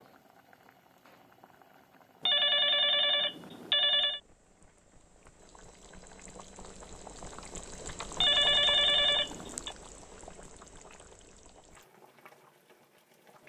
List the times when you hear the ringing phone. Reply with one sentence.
You can hear the ringing phone from 2.2 to 4.2 s and from 8.2 to 9.7 s.